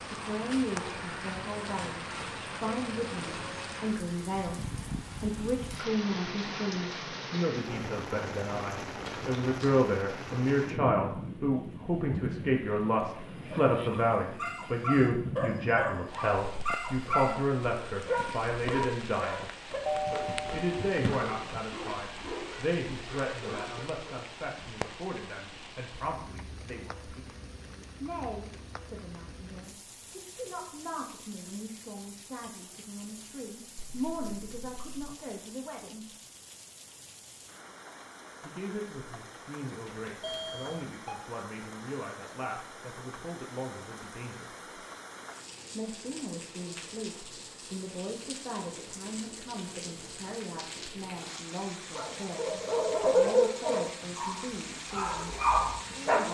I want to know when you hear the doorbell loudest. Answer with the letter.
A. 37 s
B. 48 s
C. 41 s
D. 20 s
D.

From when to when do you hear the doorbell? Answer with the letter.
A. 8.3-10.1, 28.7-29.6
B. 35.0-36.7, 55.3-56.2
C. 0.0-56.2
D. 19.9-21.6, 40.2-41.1
D.